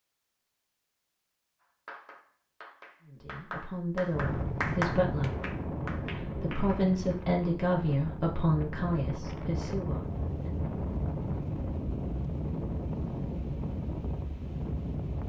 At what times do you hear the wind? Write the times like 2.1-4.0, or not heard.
4.1-15.2.